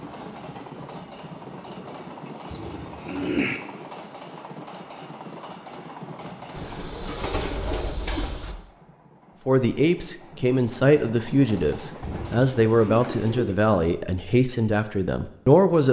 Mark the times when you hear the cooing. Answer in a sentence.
You can hear the cooing from 2.5 to 3.6 s, from 6.5 to 8.6 s and from 12.0 to 13.6 s.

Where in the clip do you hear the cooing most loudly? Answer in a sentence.
The loudest moment of the cooing is at 3 seconds.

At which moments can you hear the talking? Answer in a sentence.
The talking can be heard from 9.4 to 15.8 s.